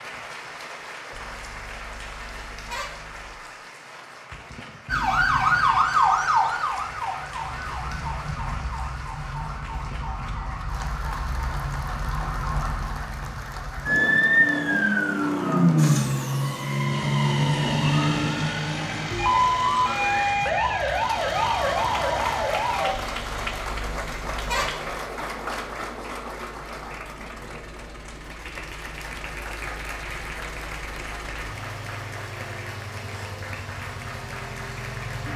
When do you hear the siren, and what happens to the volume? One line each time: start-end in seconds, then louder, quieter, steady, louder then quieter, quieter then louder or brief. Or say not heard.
4.8-22.9 quieter then louder.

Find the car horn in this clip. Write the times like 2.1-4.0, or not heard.
1.1-3.4, 22.9-24.9.